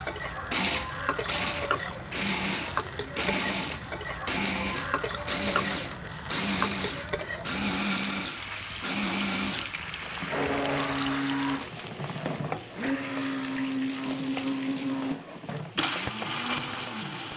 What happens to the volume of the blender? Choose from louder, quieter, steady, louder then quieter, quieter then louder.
steady.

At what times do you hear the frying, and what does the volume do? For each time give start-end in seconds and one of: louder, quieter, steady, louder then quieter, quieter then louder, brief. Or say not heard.
0.0-17.3 quieter.